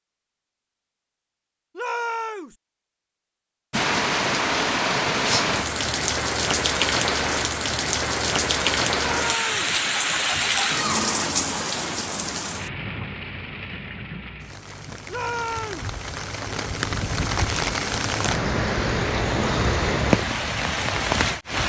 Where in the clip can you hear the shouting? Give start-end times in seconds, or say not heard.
1.8-2.5, 8.9-9.7, 15.1-15.9.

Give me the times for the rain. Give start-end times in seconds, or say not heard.
3.7-21.6.